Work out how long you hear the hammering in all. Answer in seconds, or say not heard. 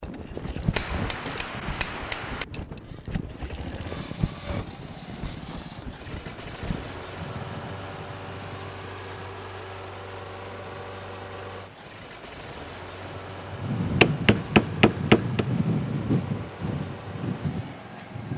3 s.